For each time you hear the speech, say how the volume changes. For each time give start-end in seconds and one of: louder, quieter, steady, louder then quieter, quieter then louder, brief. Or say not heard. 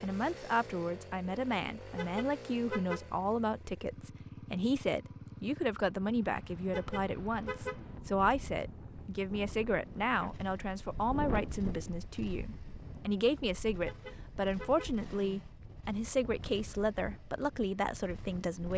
0.0-18.7 steady.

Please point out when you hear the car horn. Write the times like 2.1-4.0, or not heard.
1.9-3.1, 6.7-7.8, 13.8-14.9.